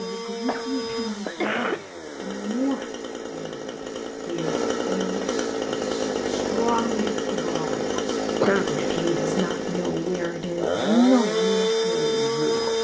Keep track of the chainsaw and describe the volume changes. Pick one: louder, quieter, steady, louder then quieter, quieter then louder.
louder.